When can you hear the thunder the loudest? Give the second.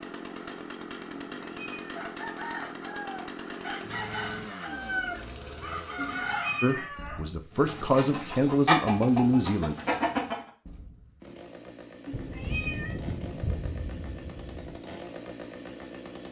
13 s.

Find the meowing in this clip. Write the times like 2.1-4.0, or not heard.
1.1-2.0, 6.0-6.9, 12.1-12.9.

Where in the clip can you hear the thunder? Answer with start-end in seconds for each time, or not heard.
12.1-14.8.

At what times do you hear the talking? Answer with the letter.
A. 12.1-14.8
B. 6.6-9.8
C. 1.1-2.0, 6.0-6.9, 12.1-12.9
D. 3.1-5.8
B.